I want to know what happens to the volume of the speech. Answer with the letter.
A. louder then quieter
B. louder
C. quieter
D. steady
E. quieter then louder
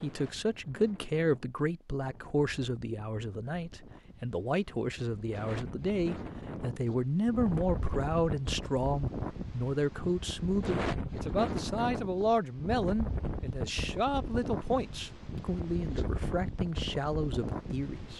D.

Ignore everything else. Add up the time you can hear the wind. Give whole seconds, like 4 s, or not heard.
18 s.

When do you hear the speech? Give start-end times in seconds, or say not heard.
0.0-18.1.